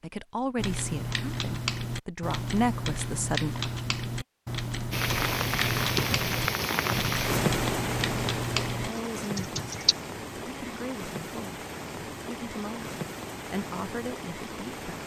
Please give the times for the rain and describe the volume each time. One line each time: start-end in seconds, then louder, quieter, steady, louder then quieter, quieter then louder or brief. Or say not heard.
4.9-15.0 quieter.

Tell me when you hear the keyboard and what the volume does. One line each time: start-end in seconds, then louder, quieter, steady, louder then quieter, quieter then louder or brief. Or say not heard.
0.6-9.9 steady.